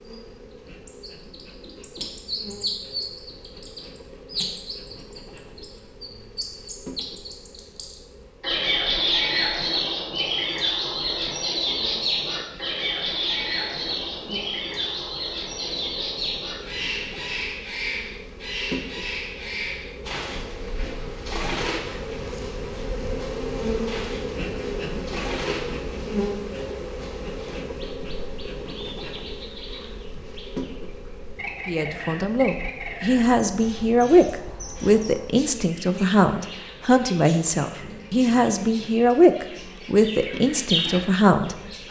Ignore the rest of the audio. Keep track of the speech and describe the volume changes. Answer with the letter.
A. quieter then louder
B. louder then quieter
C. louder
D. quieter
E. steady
E.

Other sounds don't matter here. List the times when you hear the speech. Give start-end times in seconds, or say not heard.
31.6-41.8.